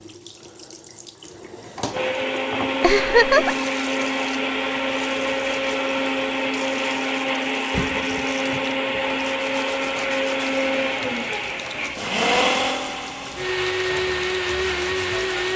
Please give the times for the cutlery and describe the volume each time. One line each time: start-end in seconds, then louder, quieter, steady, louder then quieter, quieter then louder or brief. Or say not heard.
not heard.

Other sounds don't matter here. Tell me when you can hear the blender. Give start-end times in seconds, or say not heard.
1.9-15.5.